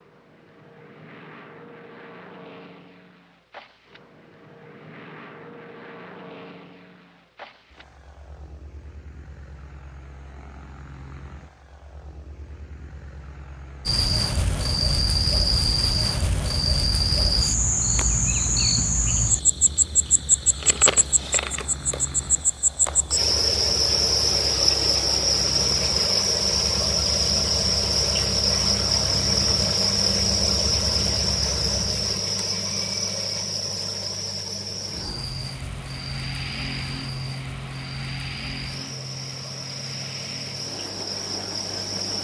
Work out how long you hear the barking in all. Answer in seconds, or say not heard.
not heard.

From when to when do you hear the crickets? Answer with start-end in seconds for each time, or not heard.
13.8-42.1.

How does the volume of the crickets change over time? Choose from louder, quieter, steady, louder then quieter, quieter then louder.
quieter.